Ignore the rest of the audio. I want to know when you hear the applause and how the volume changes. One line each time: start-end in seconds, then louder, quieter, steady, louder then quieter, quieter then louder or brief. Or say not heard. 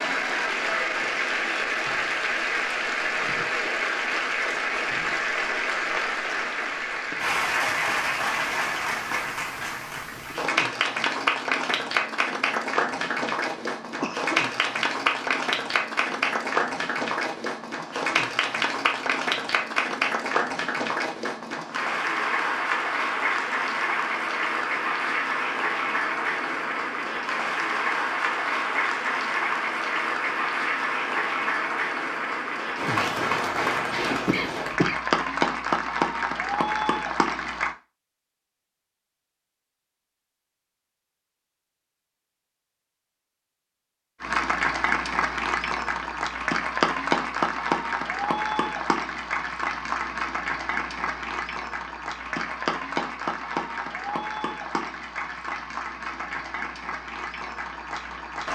0.0-37.8 steady
44.2-58.4 quieter.